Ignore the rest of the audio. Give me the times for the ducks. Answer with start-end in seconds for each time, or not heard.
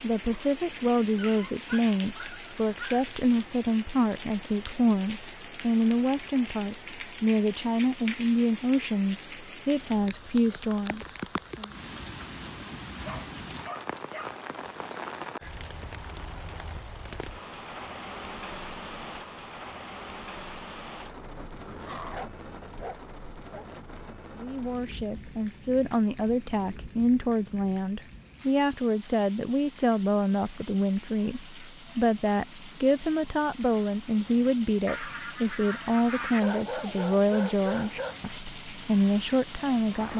34.9-36.4.